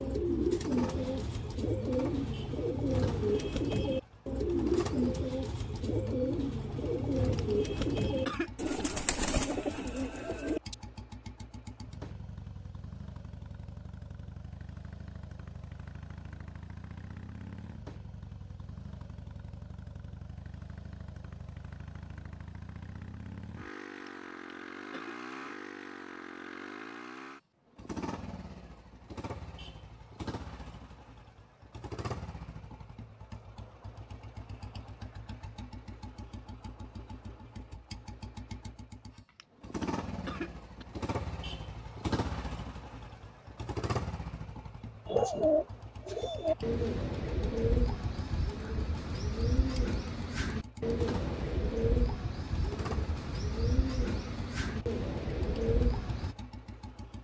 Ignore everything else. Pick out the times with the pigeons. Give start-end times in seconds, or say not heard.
0.0-10.8, 45.0-56.4.